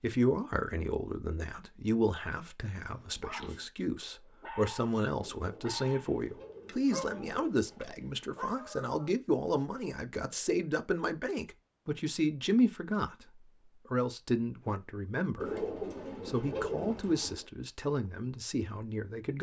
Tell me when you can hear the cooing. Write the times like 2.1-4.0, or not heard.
5.2-8.0, 15.3-17.4.